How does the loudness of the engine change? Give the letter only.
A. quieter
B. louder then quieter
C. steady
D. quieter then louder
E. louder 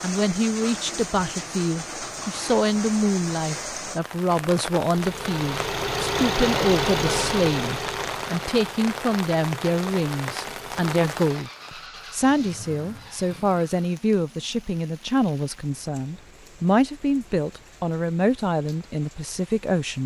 A.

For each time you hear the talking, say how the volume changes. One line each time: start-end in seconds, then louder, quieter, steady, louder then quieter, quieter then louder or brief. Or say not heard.
0.0-20.0 steady.